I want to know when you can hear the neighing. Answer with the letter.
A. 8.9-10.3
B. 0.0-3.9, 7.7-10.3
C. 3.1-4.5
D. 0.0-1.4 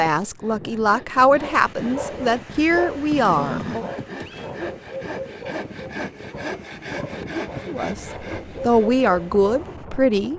C.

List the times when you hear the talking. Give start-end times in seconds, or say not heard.
0.0-3.9, 7.7-10.3.